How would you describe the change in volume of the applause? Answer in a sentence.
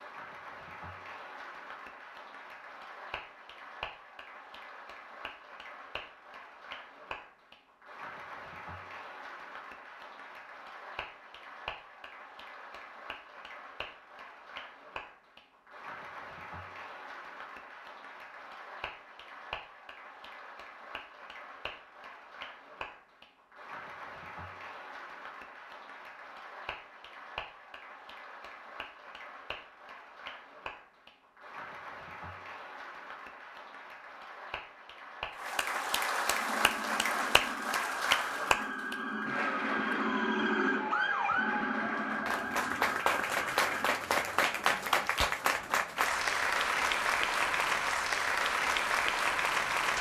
The volume of the applause goes up.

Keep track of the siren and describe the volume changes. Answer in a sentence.
The volume of the siren goes up, then down.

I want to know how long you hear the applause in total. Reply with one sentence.
The applause can be heard for 50 seconds in total.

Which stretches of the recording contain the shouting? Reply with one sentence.
You can't hear the shouting here.